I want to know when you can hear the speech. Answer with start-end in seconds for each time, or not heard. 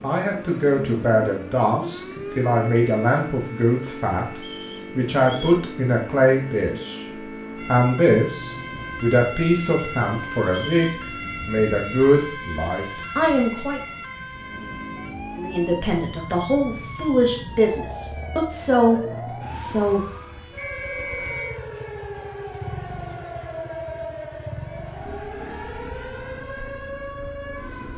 0.0-10.8, 11.4-13.8, 15.3-20.0.